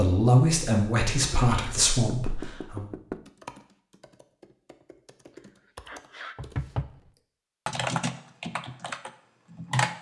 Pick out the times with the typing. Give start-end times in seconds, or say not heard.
3.2-9.9.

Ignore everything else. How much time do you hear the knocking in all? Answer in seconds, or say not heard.
2 s.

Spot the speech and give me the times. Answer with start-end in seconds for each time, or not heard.
0.0-2.9.